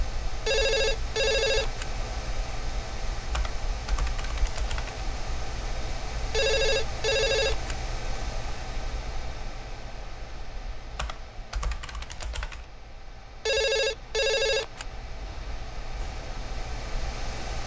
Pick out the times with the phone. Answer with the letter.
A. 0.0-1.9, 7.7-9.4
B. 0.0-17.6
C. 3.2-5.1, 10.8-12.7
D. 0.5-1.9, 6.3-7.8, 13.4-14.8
D.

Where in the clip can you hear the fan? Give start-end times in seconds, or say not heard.
0.0-17.6.